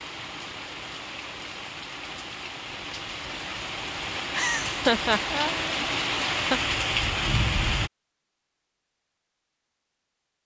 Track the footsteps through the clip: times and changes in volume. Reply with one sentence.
The footsteps can't be heard in this clip.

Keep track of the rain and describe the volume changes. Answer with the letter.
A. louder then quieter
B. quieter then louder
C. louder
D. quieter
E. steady
C.